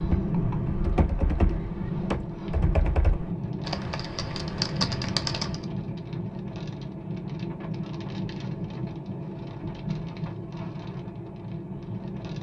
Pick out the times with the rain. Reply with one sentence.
You can hear the rain from 0.0 to 12.3 s.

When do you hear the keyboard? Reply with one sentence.
You can hear the keyboard from 0.0 to 5.7 s.